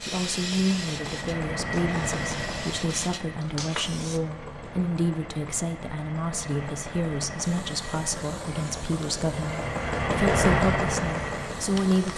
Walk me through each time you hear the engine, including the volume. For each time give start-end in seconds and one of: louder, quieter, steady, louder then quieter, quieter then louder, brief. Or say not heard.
0.0-12.1 quieter then louder.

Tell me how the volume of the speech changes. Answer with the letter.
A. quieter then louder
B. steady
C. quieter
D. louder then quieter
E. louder
B.